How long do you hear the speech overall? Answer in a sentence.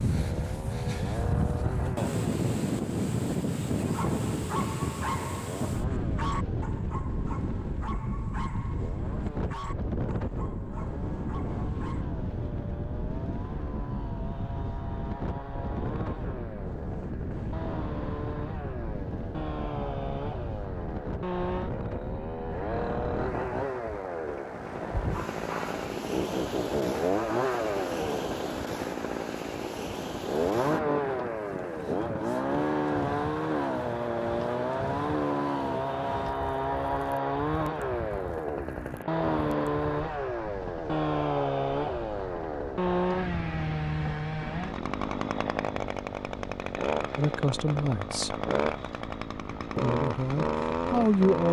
You can hear the speech for 3 seconds altogether.